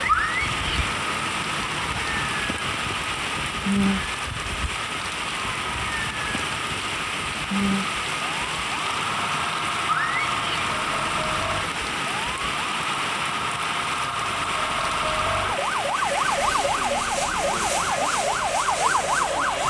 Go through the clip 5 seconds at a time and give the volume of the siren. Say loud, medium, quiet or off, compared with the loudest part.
medium, medium, medium, loud.